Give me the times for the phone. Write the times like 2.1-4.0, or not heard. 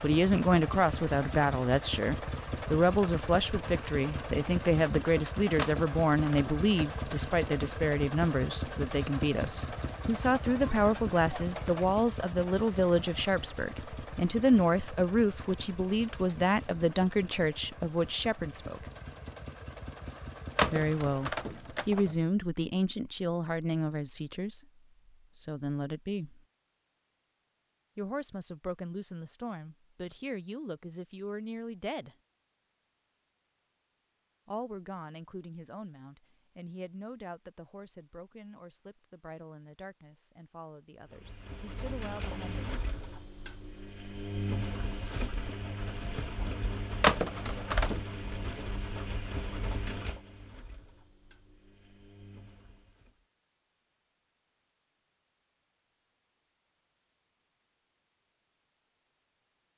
5.5-7.0, 20.6-22.1, 47.0-48.0.